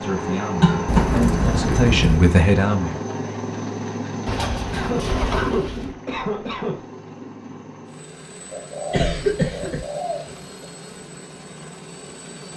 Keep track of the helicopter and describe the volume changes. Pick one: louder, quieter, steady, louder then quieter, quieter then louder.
quieter.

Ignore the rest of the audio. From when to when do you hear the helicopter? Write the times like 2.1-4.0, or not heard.
0.0-12.5.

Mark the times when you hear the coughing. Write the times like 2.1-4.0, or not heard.
0.6-1.1, 4.7-6.8, 8.9-9.8.